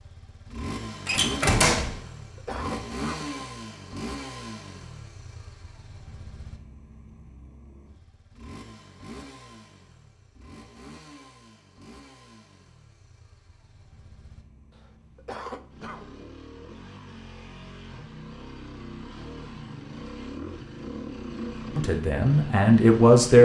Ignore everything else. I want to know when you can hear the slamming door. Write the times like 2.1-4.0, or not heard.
1.1-2.0.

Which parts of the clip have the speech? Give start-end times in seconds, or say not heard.
21.8-23.4.